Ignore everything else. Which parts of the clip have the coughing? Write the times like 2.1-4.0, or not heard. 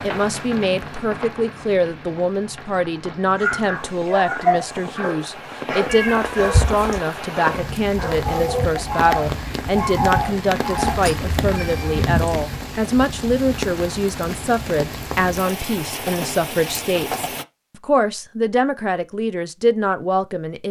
not heard.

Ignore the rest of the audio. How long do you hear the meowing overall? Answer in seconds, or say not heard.
3 s.